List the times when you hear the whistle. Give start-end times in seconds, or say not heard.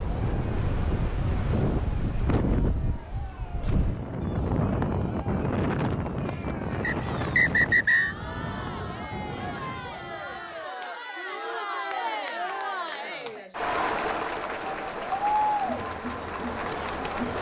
6.8-8.2.